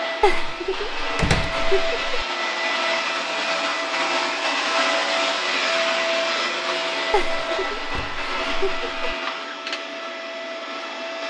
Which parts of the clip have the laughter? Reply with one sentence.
The laughter can be heard from 0.2 to 2.2 s and from 7.1 to 9.2 s.